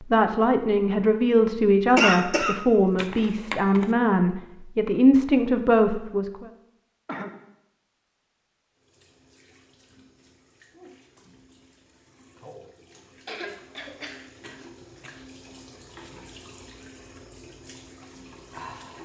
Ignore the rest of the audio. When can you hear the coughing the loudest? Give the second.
2 s.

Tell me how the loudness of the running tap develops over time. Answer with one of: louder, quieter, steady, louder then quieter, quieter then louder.
louder.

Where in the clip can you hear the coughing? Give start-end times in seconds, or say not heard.
1.9-3.9, 7.0-7.5, 13.2-15.2.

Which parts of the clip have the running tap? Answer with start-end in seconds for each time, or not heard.
8.8-19.0.